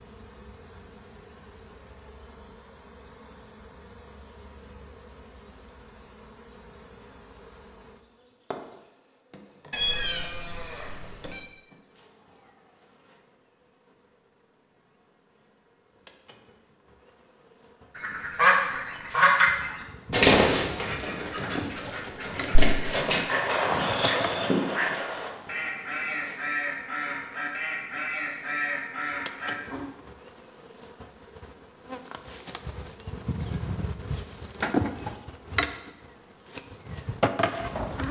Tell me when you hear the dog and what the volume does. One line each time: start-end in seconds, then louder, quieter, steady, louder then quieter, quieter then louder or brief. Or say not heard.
not heard.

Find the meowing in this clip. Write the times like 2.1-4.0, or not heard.
9.7-11.5.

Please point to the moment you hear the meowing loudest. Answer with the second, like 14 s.
10 s.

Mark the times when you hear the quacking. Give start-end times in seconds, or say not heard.
17.9-29.9.